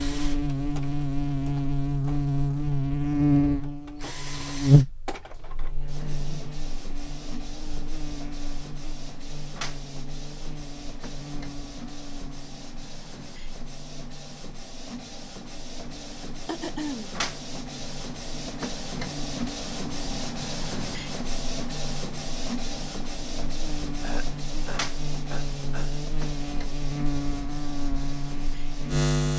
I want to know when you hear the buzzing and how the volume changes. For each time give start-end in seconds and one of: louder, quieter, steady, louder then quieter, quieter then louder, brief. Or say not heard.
0.0-29.3 quieter then louder.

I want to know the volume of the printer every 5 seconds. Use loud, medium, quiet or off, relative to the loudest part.
medium, medium, medium, loud, loud, medium.